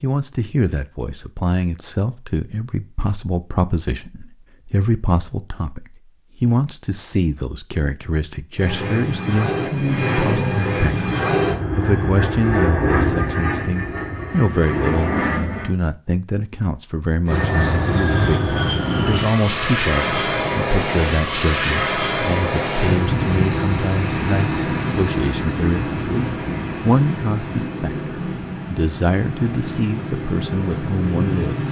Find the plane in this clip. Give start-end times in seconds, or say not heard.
8.6-15.8, 17.2-31.6.